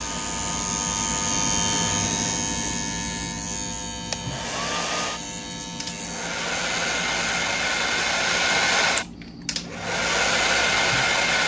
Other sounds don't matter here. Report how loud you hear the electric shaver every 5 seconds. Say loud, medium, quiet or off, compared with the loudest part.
loud, medium, medium.